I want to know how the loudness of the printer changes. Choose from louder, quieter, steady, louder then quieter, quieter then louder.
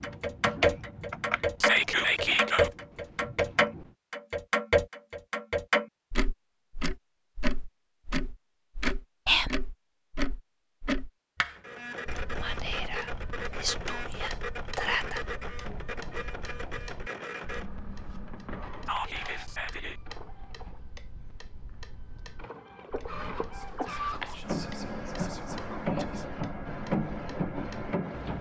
quieter then louder.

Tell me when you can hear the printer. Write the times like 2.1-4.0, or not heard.
11.5-28.3.